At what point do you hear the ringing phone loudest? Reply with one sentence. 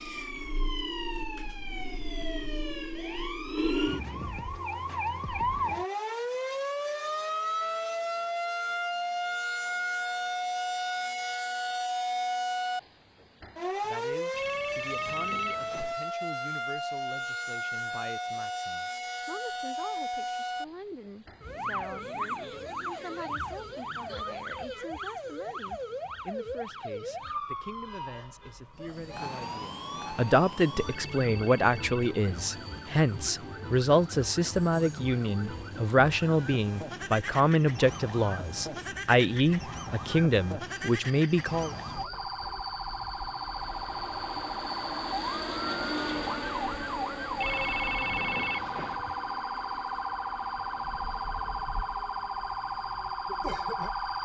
The volume of the ringing phone peaks at 48 seconds.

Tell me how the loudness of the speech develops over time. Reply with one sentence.
The volume of the speech goes up.